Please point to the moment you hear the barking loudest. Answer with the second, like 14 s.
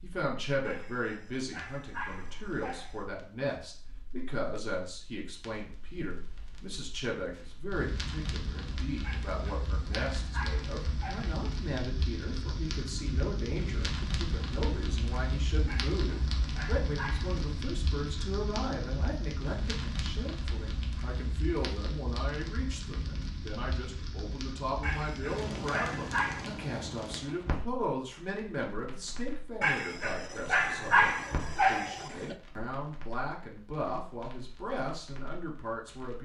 31 s.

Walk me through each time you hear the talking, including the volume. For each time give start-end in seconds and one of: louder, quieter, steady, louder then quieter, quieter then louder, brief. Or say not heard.
0.0-36.2 steady.